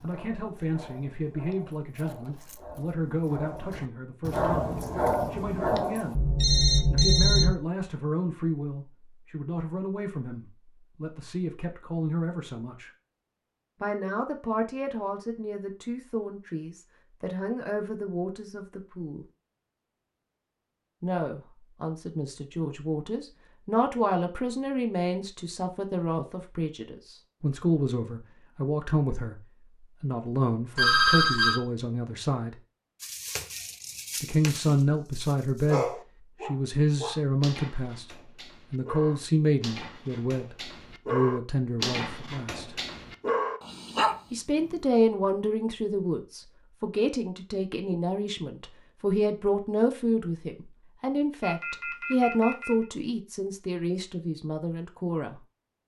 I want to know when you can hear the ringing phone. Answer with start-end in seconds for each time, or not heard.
6.2-7.5, 30.8-31.6, 51.4-52.9.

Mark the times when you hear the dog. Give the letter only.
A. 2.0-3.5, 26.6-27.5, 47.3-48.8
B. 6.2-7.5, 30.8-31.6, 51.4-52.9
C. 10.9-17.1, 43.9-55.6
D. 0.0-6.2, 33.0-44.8
D.